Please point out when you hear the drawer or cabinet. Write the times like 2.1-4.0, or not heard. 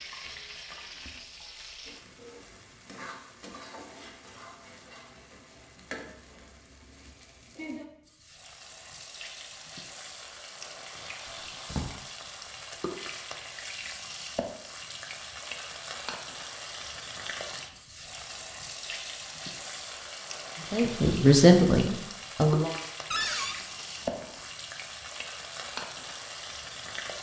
11.2-11.9, 23.1-23.6.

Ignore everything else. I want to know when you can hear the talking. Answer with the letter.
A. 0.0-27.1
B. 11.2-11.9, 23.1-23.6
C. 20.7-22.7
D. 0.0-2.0
C.